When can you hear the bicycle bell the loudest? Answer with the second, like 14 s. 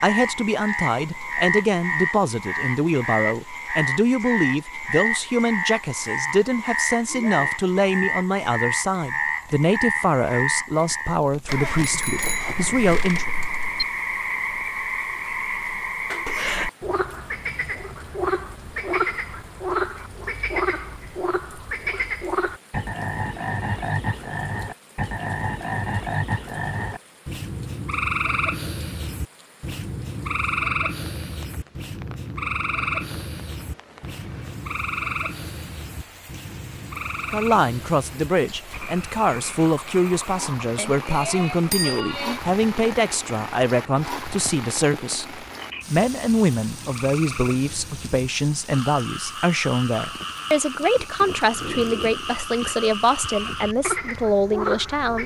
42 s.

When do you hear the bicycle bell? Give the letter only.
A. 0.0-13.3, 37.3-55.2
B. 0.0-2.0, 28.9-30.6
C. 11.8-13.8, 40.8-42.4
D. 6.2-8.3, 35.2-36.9
C.